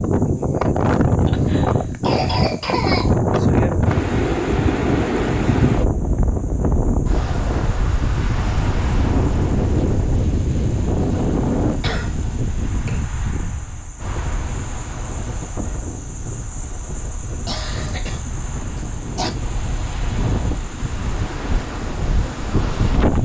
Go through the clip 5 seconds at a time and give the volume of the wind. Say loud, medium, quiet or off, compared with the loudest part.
loud, loud, medium, quiet, medium.